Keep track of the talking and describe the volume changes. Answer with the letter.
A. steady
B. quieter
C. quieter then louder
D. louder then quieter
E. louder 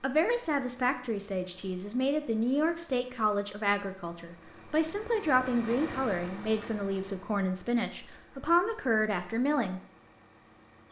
A.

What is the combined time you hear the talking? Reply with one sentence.
The talking can be heard for 10 seconds in total.